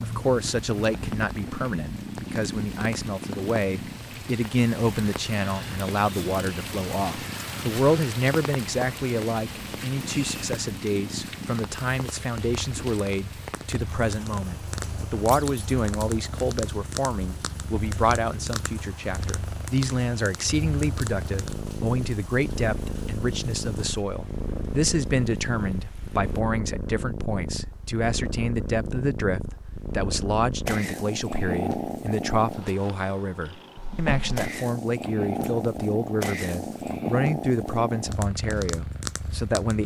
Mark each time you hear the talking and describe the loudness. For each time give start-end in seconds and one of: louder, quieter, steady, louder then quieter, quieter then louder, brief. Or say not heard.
0.0-39.8 steady.